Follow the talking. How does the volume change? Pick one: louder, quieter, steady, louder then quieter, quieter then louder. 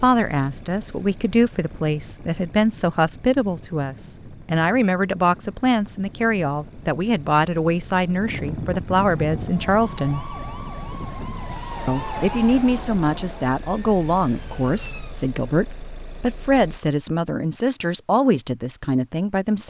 steady.